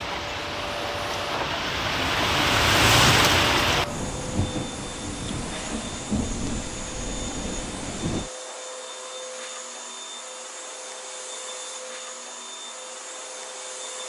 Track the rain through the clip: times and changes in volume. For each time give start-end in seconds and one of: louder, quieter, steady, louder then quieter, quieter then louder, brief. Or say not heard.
0.0-8.3 louder then quieter.